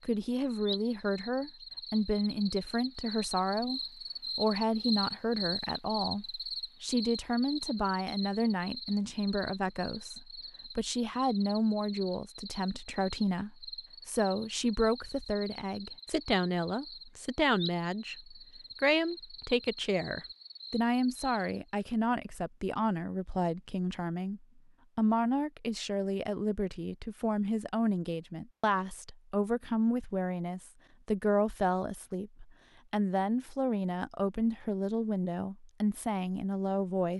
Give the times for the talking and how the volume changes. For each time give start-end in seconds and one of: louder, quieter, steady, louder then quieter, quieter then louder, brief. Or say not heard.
0.0-37.1 steady.